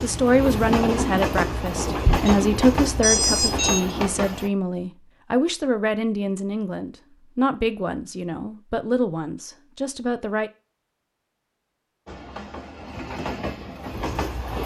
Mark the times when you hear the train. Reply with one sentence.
The train can be heard from 0.0 to 4.5 s and from 12.1 to 14.6 s.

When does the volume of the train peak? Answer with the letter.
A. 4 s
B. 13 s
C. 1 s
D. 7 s
C.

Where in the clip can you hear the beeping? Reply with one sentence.
The beeping can be heard from 2.0 to 3.9 s.